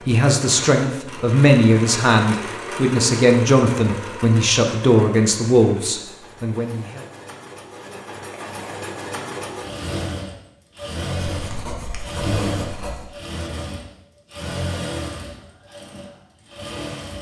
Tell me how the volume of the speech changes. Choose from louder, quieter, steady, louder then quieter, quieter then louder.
steady.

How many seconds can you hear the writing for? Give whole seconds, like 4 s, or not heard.
2 s.